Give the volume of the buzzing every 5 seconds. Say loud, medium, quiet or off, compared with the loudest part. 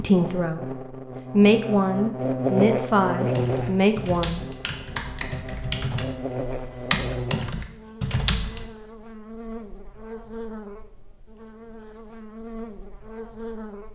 loud, medium, medium.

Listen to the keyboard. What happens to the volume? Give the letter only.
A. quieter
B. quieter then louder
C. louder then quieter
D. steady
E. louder
E.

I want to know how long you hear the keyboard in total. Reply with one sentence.
The keyboard can be heard for 5 seconds in total.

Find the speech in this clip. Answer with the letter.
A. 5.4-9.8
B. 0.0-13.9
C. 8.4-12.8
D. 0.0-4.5
D.